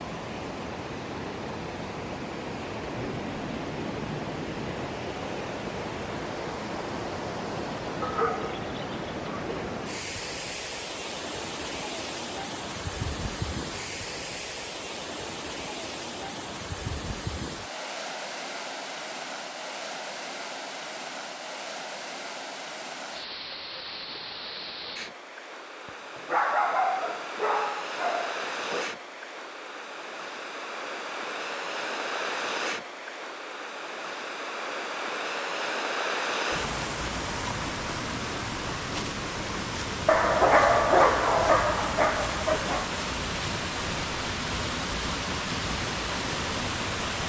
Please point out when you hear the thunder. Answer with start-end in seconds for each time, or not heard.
3.0-4.9.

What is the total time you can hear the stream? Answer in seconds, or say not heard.
47 s.